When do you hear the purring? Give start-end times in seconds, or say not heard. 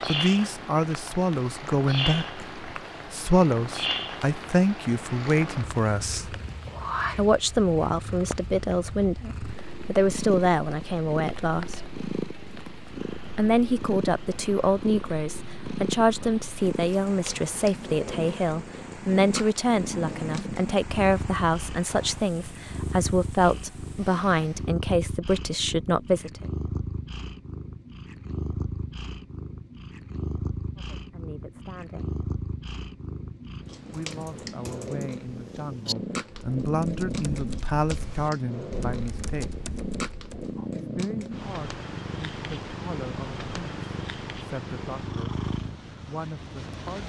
0.0-47.0.